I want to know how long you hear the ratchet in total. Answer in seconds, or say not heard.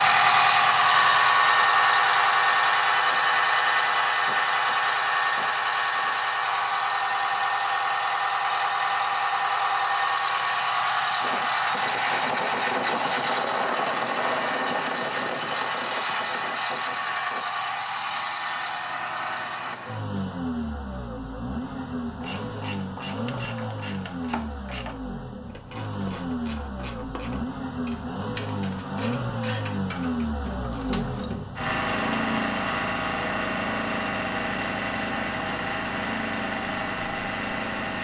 9 s.